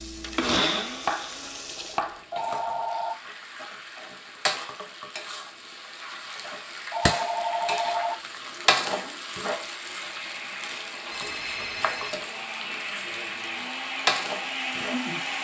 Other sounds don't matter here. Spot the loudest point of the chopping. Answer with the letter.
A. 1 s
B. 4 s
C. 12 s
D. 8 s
A.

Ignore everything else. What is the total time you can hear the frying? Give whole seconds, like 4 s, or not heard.
15 s.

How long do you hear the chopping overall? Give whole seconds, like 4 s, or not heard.
2 s.